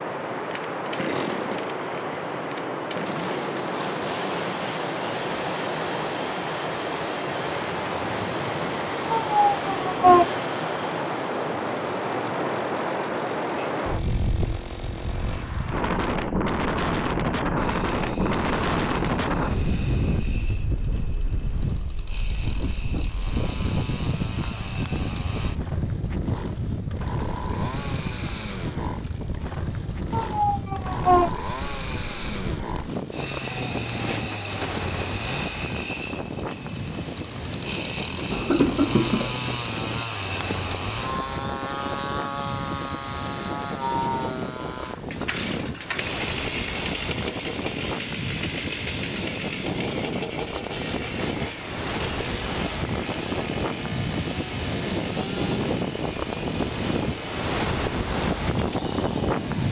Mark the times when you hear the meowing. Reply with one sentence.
The meowing can be heard from 9.1 to 10.2 s and from 30.1 to 31.3 s.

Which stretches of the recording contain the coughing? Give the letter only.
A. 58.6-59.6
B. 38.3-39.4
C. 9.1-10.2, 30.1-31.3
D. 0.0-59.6
B.